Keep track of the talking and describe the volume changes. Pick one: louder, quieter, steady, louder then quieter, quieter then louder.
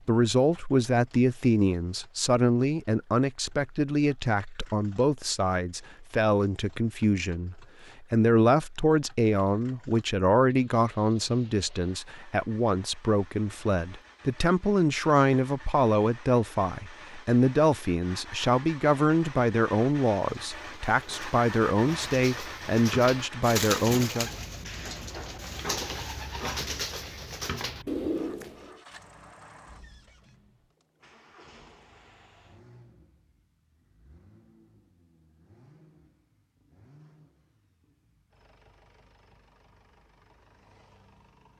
steady.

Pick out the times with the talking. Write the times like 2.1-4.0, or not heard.
0.1-24.3.